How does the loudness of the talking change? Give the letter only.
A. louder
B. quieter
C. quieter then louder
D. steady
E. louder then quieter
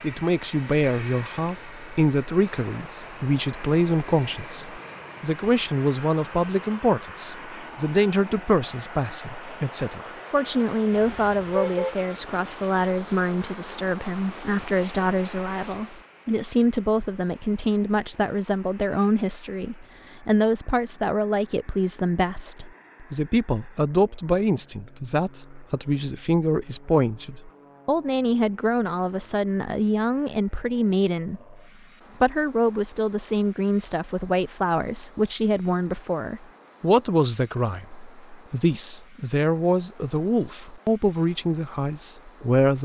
D.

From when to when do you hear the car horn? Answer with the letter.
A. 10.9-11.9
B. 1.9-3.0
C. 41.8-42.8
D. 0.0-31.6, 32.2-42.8
A.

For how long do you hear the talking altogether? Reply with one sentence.
The talking can be heard for 42 seconds in total.